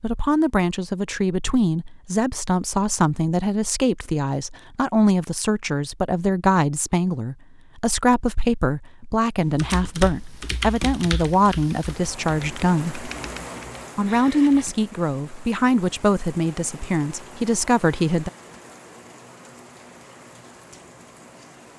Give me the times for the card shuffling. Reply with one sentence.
The card shuffling can't be heard in this clip.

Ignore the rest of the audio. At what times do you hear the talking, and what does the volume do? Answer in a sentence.
You can hear the talking from 0.0 to 13.1 s, at a steady volume; and from 13.9 to 18.3 s, getting quieter then louder.